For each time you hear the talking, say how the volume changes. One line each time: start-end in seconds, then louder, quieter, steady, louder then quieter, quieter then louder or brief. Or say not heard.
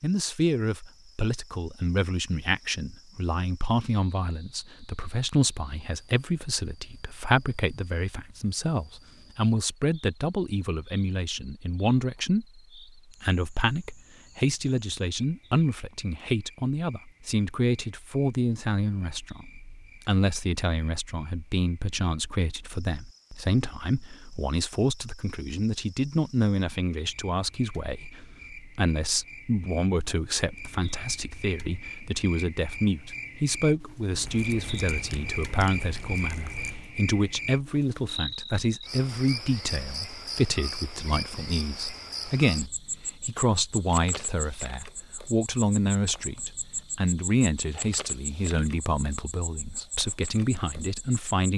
0.0-51.5 steady.